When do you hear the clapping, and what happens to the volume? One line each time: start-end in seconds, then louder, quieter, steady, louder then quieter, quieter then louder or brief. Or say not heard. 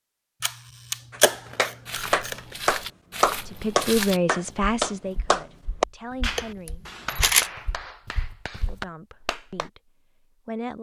1.1-9.7 quieter.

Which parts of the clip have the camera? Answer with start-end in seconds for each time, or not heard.
0.4-2.5, 6.3-7.5.